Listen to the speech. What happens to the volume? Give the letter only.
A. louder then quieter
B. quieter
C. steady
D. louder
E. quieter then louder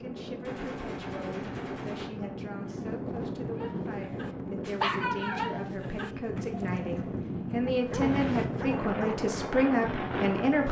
D.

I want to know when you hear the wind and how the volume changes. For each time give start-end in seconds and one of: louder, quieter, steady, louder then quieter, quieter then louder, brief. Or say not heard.
0.0-10.6 louder.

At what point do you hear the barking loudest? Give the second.
5 s.